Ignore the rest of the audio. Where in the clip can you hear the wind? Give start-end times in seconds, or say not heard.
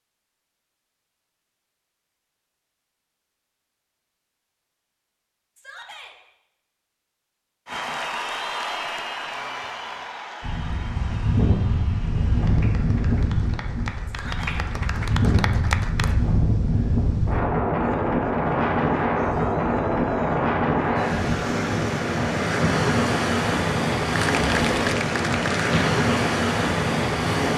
10.4-27.5.